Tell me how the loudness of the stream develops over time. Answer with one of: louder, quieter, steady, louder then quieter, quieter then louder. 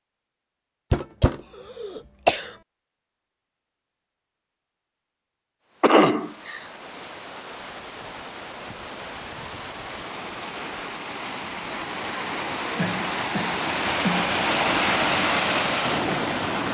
louder.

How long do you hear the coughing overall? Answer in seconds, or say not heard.
4 s.